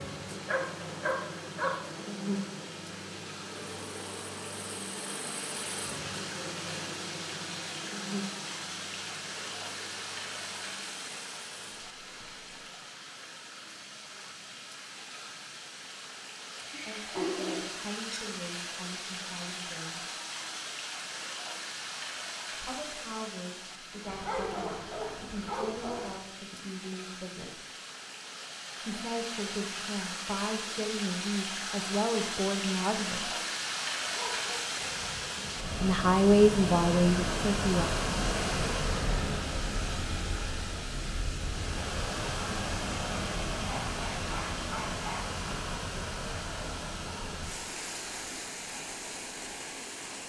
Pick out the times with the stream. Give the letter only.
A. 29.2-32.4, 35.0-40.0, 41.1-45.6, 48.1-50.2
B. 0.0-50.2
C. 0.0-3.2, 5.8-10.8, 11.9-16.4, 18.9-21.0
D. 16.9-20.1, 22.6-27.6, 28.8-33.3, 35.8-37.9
B.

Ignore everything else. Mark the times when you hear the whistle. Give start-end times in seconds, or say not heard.
not heard.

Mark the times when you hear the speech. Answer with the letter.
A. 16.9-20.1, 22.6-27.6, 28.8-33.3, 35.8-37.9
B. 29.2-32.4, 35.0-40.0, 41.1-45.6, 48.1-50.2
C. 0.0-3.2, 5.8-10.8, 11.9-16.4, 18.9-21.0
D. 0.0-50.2
A.